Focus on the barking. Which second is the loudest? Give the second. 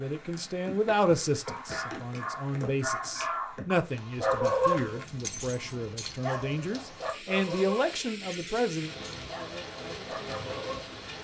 5 s.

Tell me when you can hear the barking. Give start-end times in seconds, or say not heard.
1.4-10.9.